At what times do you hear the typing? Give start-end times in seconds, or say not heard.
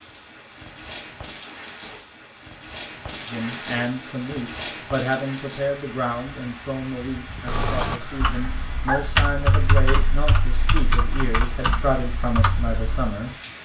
7.5-13.1.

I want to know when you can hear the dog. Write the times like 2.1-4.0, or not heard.
8.0-9.1.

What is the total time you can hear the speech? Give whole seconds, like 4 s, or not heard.
10 s.